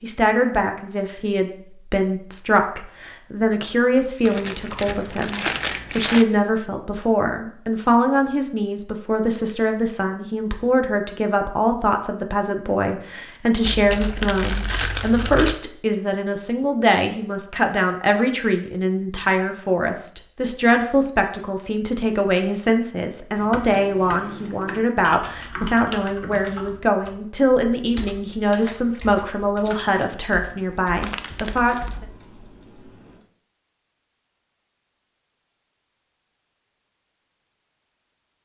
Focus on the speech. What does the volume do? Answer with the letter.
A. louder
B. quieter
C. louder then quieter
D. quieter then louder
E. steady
E.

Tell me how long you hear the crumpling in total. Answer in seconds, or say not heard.
5 s.